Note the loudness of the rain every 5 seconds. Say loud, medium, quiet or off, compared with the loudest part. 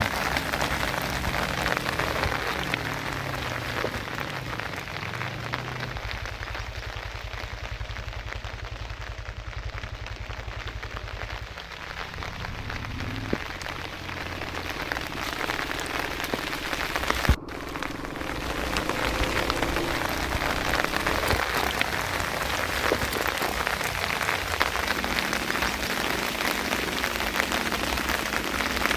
loud, medium, medium, loud, loud, loud.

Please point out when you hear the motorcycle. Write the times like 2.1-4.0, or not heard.
0.0-28.9.